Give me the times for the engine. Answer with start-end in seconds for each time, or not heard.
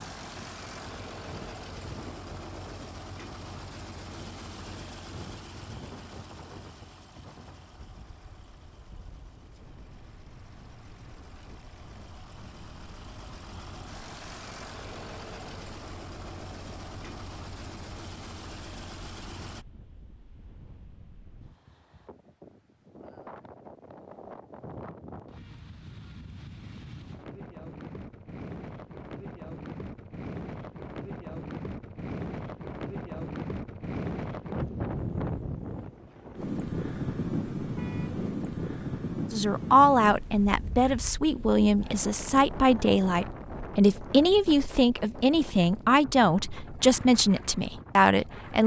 0.0-19.6.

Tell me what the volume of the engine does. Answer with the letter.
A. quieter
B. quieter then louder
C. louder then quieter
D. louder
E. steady
B.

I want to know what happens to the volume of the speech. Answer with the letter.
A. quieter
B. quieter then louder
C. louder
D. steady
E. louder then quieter
D.